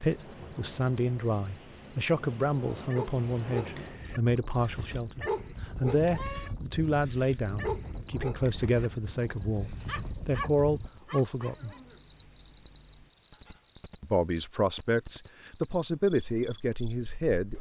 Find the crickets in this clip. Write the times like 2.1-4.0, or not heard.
0.0-17.5.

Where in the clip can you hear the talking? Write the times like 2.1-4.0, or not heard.
0.0-11.8, 14.0-17.5.